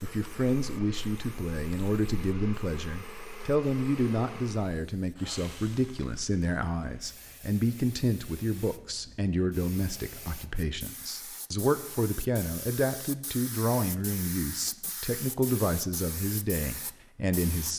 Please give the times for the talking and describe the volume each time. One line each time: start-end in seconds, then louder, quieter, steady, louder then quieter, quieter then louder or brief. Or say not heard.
0.0-17.7 steady.